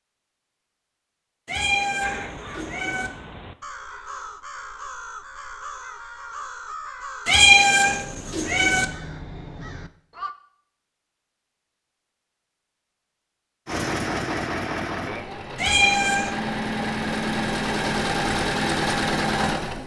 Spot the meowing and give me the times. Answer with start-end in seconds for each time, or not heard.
1.4-3.1, 7.2-8.8, 15.6-16.3.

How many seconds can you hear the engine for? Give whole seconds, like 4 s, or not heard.
6 s.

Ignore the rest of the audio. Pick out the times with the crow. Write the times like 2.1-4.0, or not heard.
2.0-10.3.